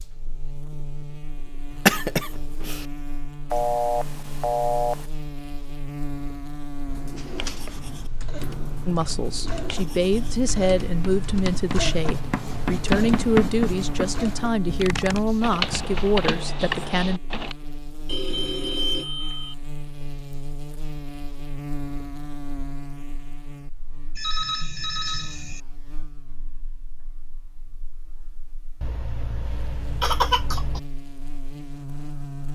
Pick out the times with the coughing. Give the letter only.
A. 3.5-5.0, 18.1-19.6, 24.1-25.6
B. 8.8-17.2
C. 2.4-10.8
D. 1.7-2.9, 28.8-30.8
D.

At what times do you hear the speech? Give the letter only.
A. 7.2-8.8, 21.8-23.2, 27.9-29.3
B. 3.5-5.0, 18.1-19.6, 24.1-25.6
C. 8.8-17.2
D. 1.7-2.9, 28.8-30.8
C.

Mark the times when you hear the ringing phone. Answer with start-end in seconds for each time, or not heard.
3.5-5.0, 18.1-19.6, 24.1-25.6.